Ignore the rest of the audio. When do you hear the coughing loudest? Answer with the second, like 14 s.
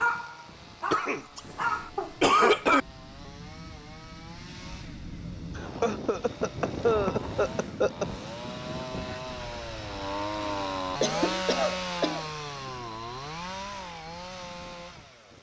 2 s.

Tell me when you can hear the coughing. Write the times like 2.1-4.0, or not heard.
0.9-2.9, 5.5-8.1, 10.6-12.2.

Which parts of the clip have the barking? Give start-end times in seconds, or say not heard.
0.0-2.5.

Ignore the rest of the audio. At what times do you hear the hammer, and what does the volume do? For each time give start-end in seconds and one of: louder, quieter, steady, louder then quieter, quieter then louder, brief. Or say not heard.
not heard.